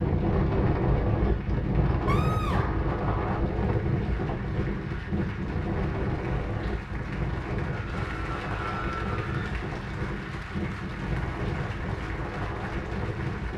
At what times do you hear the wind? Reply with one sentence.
The wind can be heard from 0.0 to 13.5 s.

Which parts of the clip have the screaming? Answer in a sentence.
You can hear the screaming from 2.0 to 3.0 s and from 7.8 to 9.5 s.